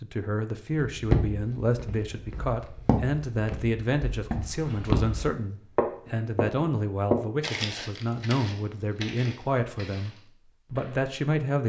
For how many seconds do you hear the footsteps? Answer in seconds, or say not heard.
10 s.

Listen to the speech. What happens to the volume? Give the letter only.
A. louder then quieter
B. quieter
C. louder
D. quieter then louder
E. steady
E.